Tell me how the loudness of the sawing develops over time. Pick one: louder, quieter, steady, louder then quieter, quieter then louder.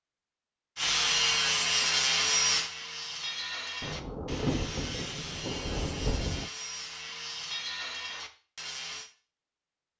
quieter.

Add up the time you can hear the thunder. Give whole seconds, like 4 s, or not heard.
3 s.